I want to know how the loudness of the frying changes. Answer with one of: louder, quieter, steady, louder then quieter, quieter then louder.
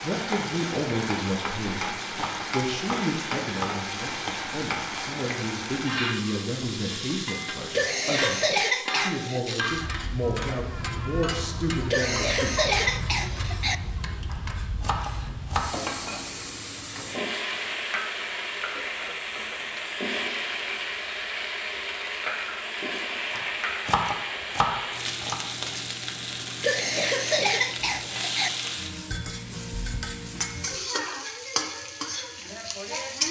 steady.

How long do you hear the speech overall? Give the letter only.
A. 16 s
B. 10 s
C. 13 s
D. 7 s
C.